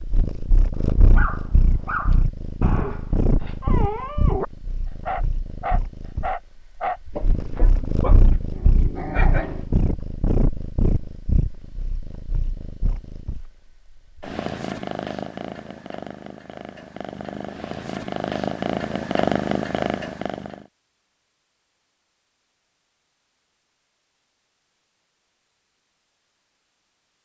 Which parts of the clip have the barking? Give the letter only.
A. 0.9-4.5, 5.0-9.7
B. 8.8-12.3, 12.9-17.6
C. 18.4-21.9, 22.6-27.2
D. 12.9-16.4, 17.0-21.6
A.